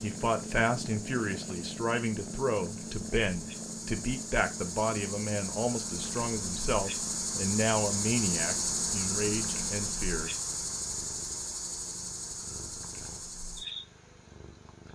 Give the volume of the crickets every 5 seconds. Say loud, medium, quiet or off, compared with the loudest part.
medium, loud, medium.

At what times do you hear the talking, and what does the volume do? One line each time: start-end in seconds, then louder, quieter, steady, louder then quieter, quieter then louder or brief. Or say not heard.
0.0-10.3 steady.